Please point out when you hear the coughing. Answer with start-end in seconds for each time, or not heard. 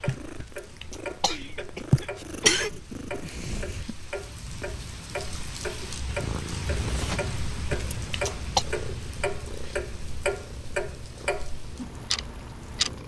0.3-2.7, 7.7-8.7.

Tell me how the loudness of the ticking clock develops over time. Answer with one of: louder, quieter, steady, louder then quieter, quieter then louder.
louder.